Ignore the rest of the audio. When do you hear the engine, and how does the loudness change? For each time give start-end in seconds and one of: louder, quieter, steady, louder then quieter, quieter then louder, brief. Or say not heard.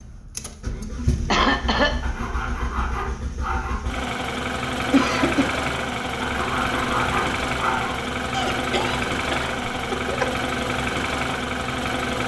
0.0-12.2 louder.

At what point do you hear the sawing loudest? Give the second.
7 s.